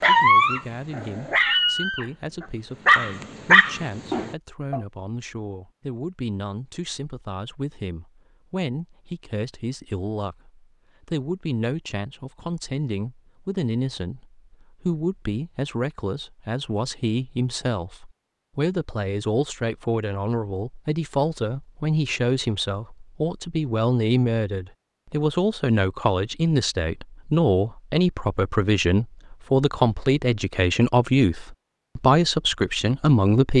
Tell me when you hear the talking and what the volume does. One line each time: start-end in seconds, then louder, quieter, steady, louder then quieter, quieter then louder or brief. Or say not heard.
0.0-33.5 louder.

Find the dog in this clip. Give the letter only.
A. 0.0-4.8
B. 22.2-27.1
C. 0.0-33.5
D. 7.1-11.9
A.